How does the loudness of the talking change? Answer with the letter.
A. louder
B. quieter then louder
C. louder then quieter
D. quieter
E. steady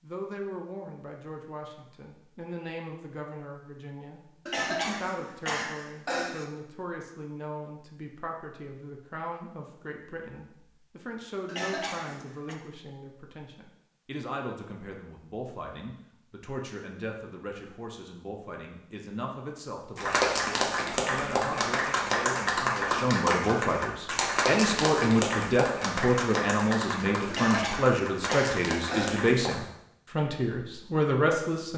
A.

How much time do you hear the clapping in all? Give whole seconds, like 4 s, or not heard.
10 s.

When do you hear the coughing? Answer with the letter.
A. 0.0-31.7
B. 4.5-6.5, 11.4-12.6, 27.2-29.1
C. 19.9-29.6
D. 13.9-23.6
B.